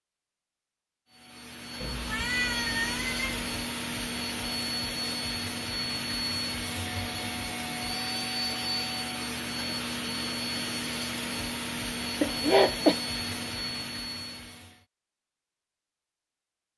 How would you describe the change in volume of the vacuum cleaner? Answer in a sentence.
The volume of the vacuum cleaner stays about the same.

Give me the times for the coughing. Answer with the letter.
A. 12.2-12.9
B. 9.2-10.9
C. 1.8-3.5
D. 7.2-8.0
A.